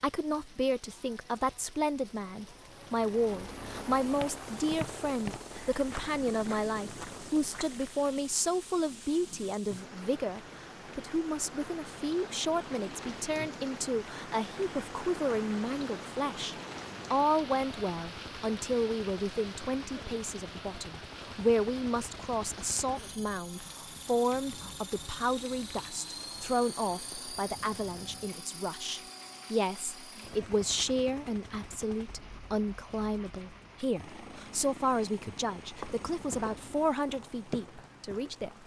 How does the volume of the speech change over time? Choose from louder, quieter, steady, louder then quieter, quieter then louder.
steady.